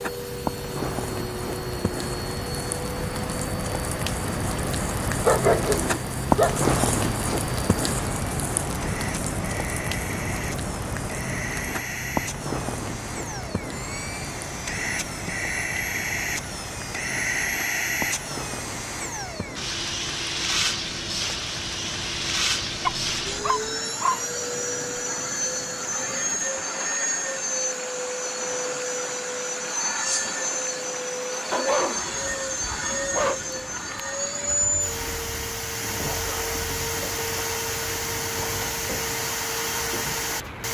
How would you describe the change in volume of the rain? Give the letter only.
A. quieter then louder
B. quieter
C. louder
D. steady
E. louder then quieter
B.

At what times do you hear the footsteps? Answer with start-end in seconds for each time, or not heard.
not heard.